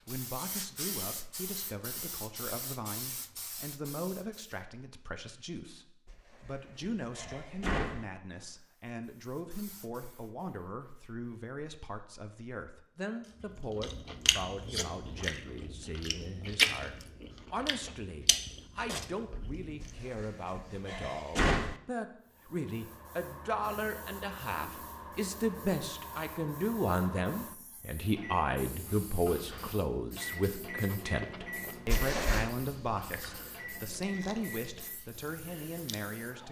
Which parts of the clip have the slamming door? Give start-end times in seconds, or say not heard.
6.0-8.1, 19.8-21.8, 31.9-32.5.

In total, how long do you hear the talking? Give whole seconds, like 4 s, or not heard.
36 s.